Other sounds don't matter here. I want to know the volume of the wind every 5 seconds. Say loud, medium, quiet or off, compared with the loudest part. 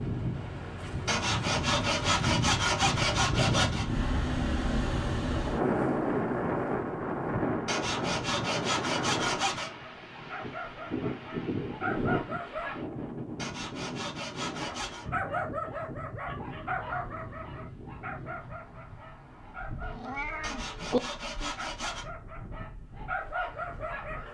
loud, loud, medium, quiet, quiet.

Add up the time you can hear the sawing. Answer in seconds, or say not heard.
8 s.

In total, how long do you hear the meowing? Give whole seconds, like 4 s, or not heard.
2 s.